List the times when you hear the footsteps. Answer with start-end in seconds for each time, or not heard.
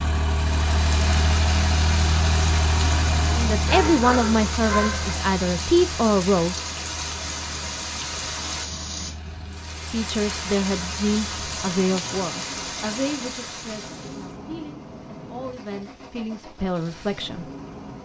not heard.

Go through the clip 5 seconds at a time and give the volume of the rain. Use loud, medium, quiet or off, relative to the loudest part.
loud, loud, loud, off.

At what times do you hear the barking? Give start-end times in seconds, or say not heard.
3.6-5.2.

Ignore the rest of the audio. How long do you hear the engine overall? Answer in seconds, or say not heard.
18 s.